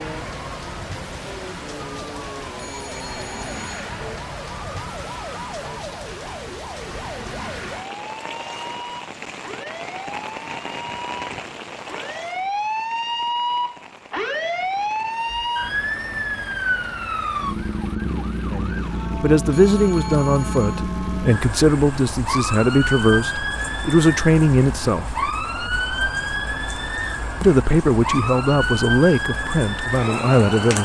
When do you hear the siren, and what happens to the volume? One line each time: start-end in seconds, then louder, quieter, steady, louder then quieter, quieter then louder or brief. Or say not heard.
0.0-30.8 louder.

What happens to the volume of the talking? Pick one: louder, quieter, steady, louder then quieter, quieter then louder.
steady.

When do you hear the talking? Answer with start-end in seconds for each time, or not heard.
18.5-25.1, 27.4-30.8.